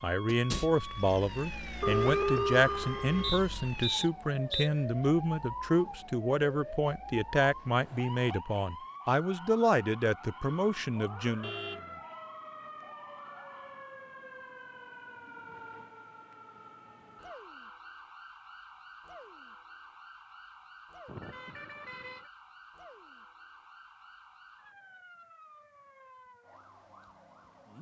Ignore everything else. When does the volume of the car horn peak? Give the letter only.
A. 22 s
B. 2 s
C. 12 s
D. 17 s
B.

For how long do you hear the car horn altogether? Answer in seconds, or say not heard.
3 s.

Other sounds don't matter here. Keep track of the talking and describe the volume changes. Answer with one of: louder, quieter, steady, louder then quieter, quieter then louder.
steady.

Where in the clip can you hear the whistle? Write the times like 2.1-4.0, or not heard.
3.2-4.7.